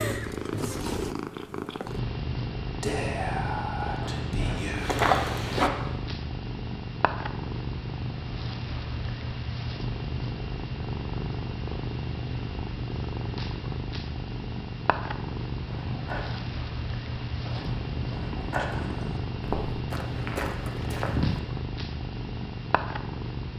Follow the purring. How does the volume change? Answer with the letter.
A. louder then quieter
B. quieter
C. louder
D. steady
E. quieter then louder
D.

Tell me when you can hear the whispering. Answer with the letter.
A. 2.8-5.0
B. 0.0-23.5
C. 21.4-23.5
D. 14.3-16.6
A.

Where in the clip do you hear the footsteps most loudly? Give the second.
5 s.